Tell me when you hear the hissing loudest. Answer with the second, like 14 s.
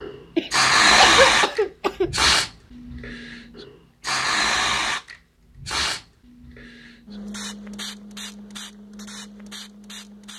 1 s.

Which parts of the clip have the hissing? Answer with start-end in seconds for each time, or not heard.
0.0-10.3.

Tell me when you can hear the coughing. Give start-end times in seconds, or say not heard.
0.3-2.1.